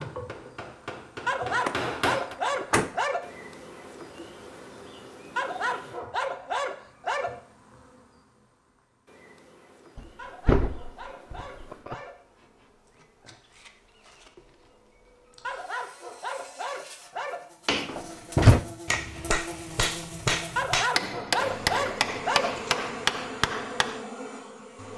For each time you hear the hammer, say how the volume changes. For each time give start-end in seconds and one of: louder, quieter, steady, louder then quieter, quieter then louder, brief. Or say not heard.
0.0-2.4 brief
17.6-24.1 steady.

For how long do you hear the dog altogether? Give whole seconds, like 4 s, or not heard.
10 s.